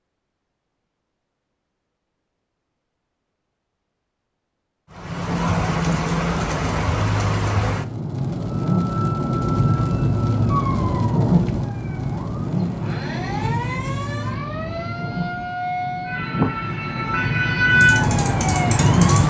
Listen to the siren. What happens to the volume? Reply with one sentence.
The volume of the siren goes down, then up.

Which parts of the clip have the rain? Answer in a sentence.
The rain can be heard from 4.9 to 19.2 s.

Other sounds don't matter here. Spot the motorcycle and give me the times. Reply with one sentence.
You can hear the motorcycle from 17.6 to 19.2 s.